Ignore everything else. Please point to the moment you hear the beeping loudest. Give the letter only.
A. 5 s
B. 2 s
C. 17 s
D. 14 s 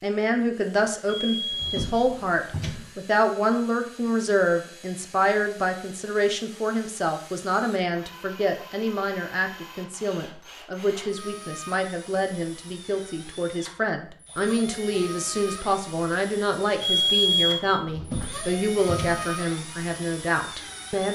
C.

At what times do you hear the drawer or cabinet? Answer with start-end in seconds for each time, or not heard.
1.5-2.9, 17.9-19.2.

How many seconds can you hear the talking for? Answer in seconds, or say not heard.
21 s.